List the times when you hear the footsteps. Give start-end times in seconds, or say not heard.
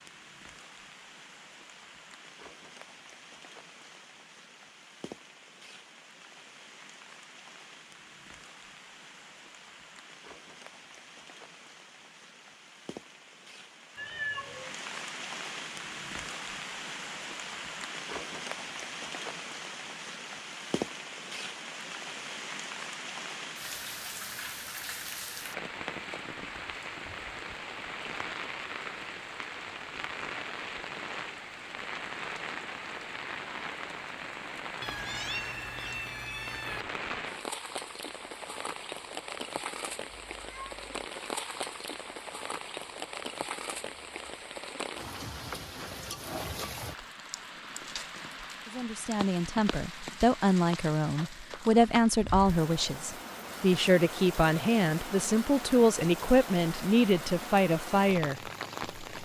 not heard.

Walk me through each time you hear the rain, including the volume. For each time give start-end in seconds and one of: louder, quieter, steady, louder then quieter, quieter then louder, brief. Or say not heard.
0.0-59.1 louder.